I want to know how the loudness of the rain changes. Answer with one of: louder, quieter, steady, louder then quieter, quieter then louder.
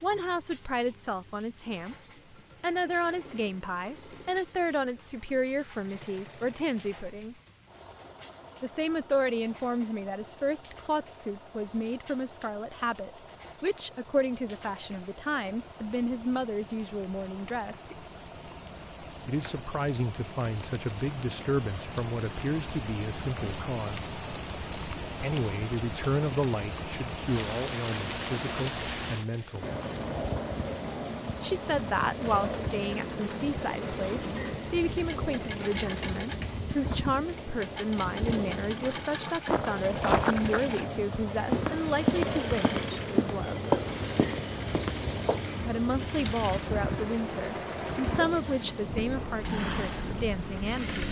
louder.